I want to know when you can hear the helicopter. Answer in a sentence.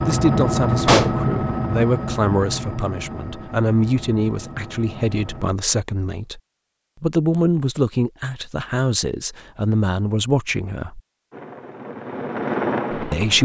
You can hear the helicopter from 0.0 to 5.5 s and from 11.3 to 13.4 s.